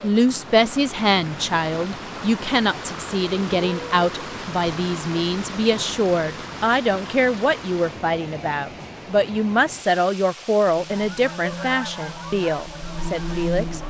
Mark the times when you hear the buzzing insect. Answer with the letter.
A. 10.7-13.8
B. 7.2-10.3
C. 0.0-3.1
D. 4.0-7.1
A.